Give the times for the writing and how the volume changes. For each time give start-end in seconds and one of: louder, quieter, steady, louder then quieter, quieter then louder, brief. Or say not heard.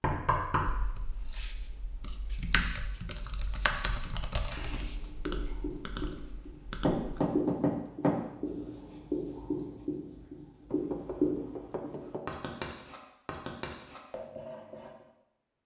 4.5-15.1 louder then quieter.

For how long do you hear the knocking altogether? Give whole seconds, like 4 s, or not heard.
4 s.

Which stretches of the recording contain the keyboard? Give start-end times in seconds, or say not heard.
0.7-7.2.